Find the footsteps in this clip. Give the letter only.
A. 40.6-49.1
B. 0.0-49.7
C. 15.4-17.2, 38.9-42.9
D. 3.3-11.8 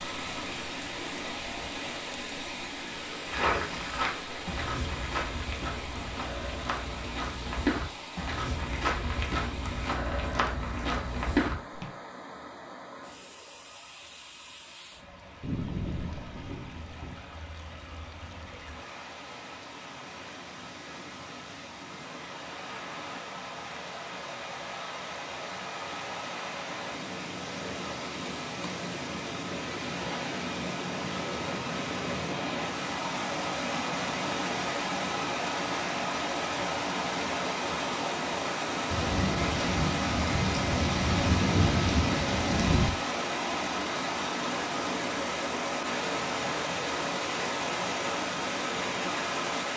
D.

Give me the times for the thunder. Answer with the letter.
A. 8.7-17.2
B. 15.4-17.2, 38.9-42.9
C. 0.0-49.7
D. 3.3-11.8
B.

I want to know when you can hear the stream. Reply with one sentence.
The stream can be heard from 0.0 to 49.7 s.